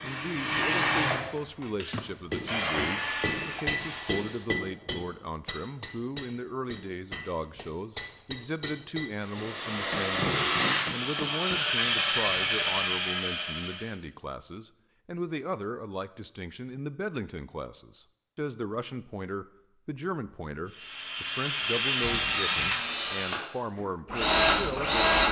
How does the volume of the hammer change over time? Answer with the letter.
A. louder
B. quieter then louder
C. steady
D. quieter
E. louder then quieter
D.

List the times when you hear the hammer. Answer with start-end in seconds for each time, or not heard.
1.6-11.7.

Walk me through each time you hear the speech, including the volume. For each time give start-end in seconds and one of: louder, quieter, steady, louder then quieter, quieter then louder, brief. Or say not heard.
0.0-25.2 steady.